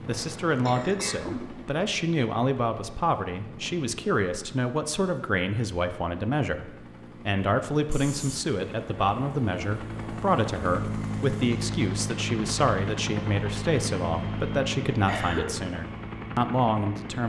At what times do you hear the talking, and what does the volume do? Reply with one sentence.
The talking can be heard from 0.1 to 17.2 s, at a steady volume.